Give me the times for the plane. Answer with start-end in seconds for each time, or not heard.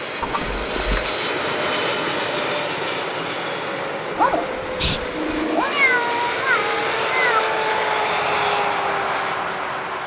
0.0-10.0.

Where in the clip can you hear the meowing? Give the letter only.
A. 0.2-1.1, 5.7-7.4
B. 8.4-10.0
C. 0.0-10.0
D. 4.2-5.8
A.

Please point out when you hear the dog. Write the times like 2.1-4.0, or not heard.
4.2-5.8.